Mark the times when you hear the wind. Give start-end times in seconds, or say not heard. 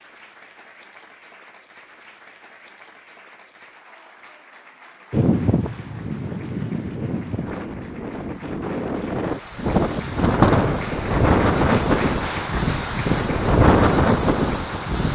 5.1-15.1.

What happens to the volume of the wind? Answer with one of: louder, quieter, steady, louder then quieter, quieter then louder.
louder.